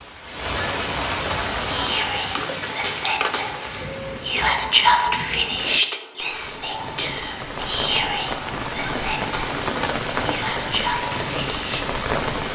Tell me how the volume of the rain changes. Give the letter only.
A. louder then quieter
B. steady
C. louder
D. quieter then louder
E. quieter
D.